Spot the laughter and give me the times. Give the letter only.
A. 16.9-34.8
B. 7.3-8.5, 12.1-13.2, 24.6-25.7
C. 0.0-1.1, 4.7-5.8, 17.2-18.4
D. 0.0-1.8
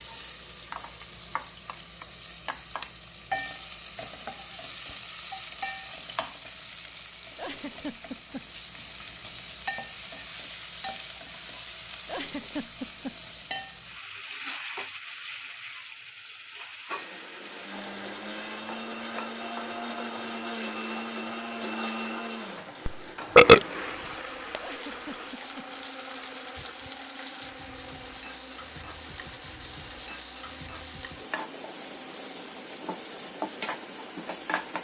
B.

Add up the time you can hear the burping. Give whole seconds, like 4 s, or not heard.
2 s.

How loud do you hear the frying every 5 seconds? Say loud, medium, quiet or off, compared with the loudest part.
loud, loud, loud, medium, medium, loud, loud.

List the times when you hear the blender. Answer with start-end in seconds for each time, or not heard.
16.9-34.8.